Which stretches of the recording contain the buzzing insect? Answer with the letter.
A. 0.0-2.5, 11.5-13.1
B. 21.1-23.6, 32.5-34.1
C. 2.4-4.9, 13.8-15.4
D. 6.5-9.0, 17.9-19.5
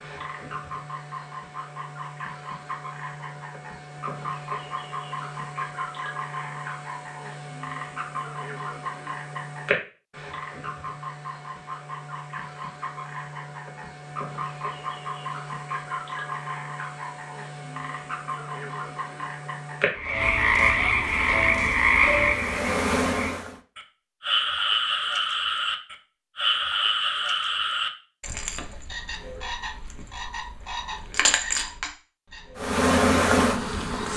B.